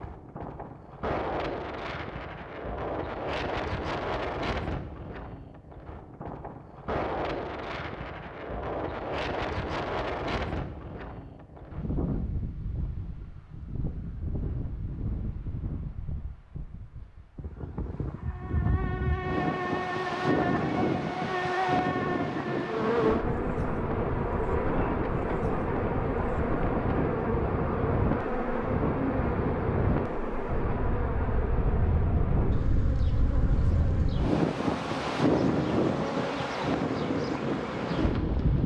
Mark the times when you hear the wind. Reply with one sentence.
You can hear the wind from 0.0 to 38.6 s.